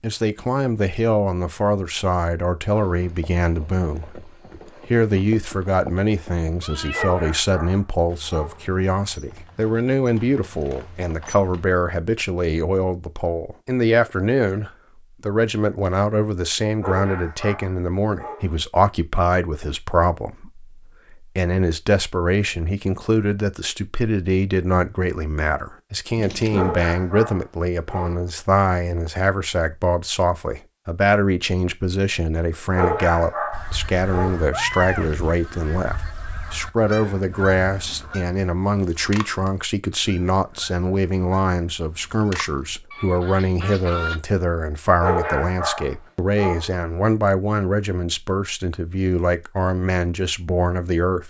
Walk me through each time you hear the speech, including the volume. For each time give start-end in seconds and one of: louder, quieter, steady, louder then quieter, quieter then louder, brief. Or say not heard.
0.0-51.2 steady.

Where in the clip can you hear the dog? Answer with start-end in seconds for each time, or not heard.
6.9-8.6, 16.8-18.5, 26.5-28.2, 32.8-34.4, 45.0-46.7.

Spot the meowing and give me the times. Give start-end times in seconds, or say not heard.
6.6-7.3, 26.1-26.9, 34.5-35.3.